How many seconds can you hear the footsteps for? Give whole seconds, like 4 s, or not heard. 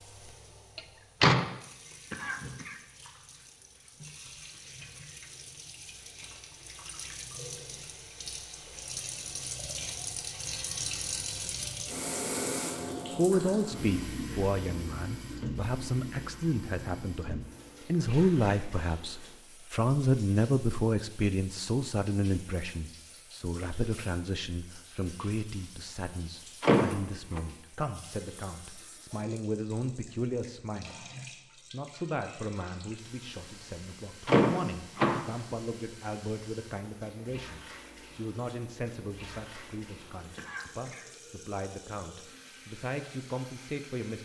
not heard.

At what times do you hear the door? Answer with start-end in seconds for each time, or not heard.
0.8-1.4, 26.6-27.4, 34.2-35.2.